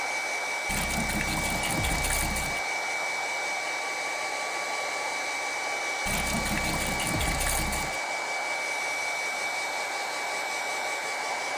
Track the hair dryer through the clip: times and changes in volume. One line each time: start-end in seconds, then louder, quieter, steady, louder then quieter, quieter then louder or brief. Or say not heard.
0.0-11.5 steady.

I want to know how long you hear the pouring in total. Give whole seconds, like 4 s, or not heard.
4 s.